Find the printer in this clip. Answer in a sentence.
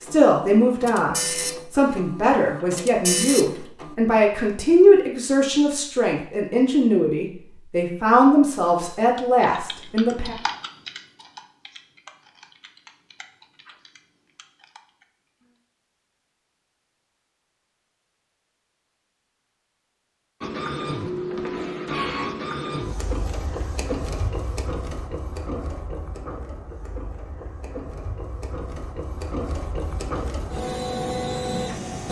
You can hear the printer from 0.0 to 4.0 s and from 20.4 to 32.0 s.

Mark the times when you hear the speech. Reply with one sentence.
You can hear the speech from 0.0 to 10.3 s.